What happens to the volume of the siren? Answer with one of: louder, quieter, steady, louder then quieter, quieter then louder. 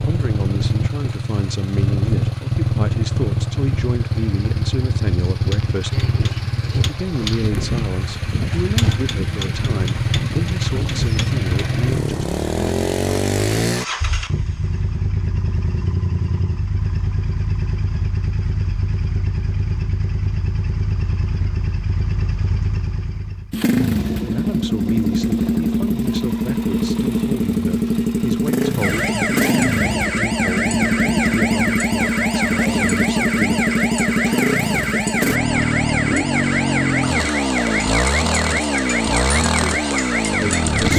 steady.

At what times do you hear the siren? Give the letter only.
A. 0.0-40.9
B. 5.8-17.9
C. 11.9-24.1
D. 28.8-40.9
D.